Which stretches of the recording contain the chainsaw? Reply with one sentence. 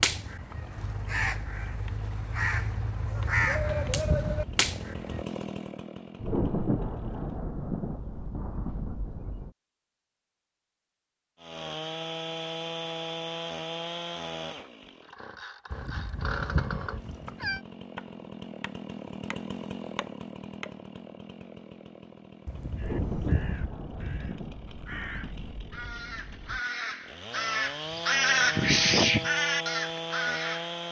The chainsaw can be heard from 0.0 to 7.2 s and from 11.3 to 30.8 s.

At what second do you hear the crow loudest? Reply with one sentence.
The loudest moment of the crow is at 29 seconds.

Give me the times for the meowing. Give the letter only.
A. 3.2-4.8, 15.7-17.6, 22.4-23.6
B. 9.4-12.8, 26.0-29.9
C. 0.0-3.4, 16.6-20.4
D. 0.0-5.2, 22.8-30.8
A.